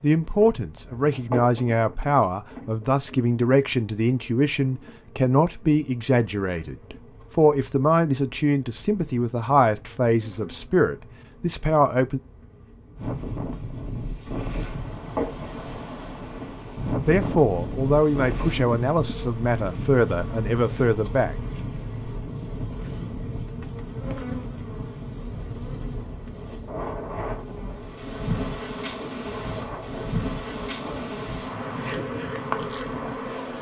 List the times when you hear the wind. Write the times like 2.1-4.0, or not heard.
12.9-33.3.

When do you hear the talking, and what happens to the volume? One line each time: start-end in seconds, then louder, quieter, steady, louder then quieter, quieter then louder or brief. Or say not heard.
0.0-12.2 steady
17.1-21.4 steady.